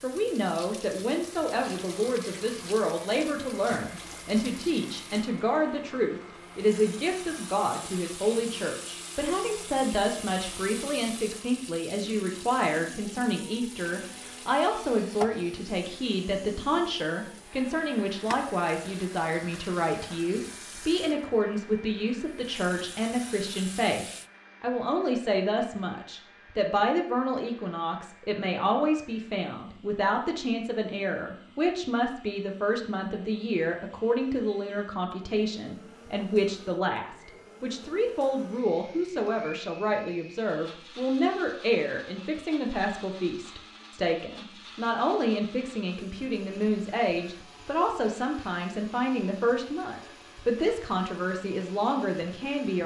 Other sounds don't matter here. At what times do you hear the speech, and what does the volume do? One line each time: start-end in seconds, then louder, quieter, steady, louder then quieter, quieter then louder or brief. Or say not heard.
0.0-52.8 steady.